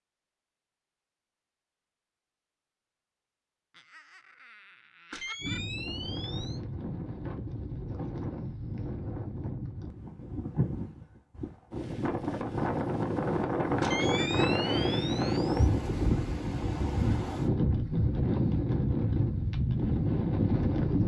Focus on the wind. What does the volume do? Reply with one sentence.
The volume of the wind goes up.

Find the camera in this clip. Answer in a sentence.
You can hear the camera from 5.1 to 6.6 s and from 13.8 to 15.7 s.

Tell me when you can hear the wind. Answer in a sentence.
You can hear the wind from 5.3 to 21.0 s.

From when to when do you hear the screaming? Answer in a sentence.
You can't hear the screaming here.